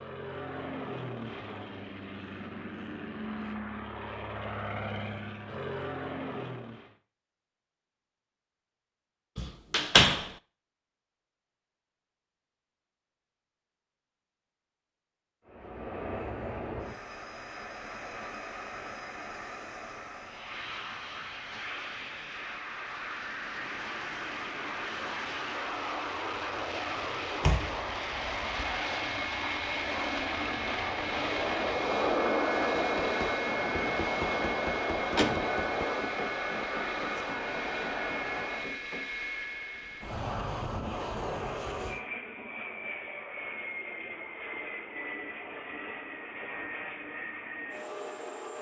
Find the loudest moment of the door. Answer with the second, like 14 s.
10 s.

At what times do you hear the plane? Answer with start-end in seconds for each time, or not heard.
0.0-7.0, 15.4-48.5.